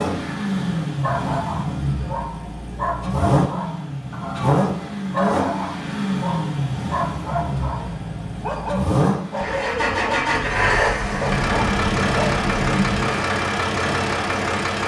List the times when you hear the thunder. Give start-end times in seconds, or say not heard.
9.4-13.2.